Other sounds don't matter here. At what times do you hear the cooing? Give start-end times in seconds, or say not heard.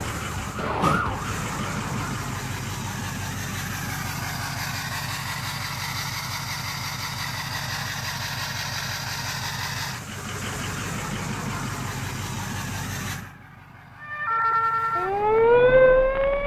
not heard.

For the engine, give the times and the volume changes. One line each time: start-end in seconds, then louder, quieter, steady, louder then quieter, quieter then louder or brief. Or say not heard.
0.0-16.4 quieter.